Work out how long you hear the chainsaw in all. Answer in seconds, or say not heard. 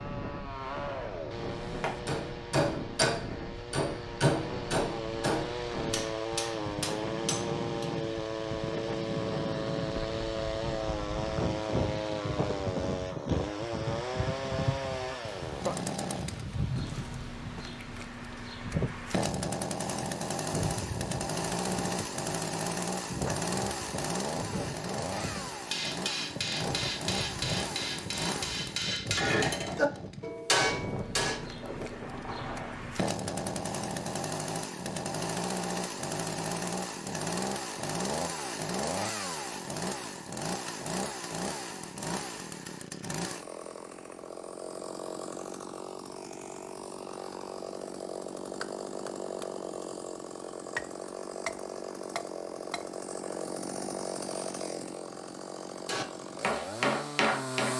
58 s.